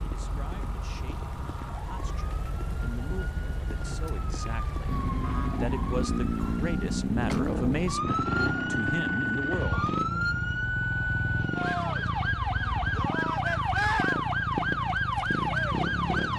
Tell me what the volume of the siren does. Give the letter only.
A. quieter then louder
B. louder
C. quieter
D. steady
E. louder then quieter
B.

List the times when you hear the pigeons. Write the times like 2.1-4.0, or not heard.
not heard.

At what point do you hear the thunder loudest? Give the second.
3 s.